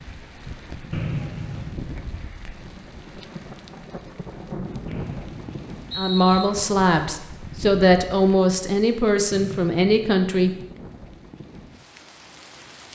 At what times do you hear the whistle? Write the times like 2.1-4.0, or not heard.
0.9-1.8, 4.8-6.5, 9.3-10.1.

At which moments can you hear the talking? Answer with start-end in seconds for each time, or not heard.
6.0-10.5.